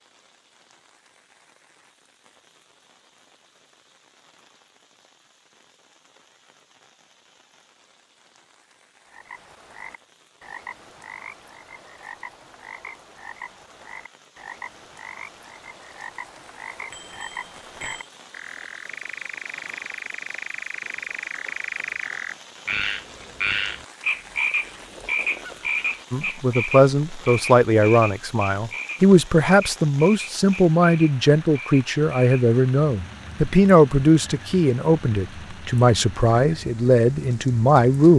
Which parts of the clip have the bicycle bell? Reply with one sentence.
The bicycle bell can be heard from 16.9 to 18.1 s.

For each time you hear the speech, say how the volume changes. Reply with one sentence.
The speech can be heard from 26.1 to 38.1 s, at a steady volume.